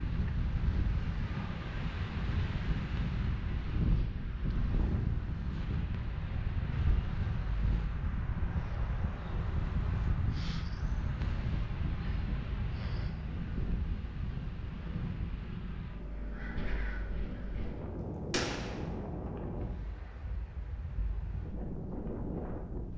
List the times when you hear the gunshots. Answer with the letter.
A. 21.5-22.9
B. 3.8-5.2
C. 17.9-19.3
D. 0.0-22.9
C.